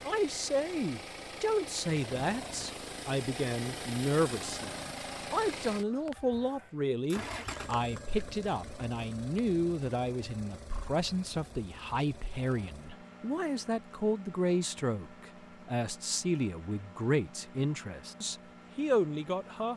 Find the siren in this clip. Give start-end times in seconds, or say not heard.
not heard.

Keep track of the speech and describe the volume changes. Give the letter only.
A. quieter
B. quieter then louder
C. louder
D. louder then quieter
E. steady
E.